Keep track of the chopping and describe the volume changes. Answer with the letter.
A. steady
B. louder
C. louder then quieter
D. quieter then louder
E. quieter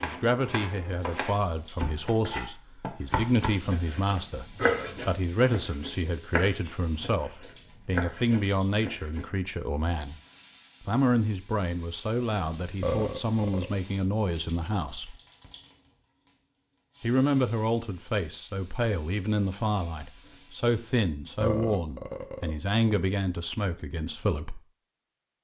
A.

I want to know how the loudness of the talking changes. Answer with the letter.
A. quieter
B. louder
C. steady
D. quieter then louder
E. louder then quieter
C.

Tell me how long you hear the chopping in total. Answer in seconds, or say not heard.
9 s.